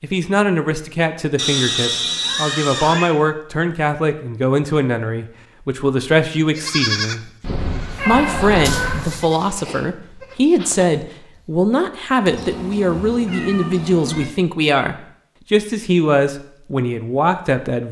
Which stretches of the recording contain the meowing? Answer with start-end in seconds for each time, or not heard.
1.4-3.1, 7.4-9.2, 12.2-14.2.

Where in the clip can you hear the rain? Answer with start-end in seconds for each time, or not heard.
not heard.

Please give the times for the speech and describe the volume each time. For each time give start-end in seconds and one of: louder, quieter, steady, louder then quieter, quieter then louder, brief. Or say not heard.
0.0-7.3 steady
8.1-17.8 steady.